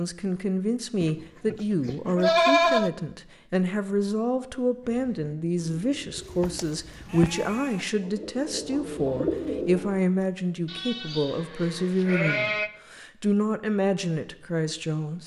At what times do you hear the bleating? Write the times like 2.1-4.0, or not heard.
1.0-2.9, 6.2-7.8, 10.7-12.7.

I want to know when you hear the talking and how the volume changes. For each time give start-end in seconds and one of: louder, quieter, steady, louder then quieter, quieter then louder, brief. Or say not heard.
0.0-15.2 steady.